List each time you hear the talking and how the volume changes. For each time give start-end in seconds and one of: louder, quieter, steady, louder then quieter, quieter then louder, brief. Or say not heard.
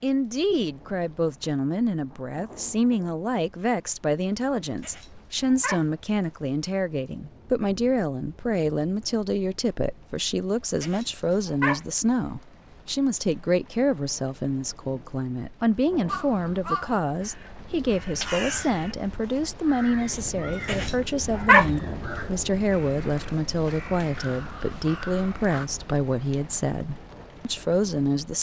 0.0-28.3 steady.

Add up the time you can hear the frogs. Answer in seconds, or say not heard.
not heard.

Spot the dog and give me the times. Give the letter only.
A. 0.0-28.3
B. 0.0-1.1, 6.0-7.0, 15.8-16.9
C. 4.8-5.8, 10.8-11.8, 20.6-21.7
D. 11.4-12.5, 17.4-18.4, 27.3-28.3
C.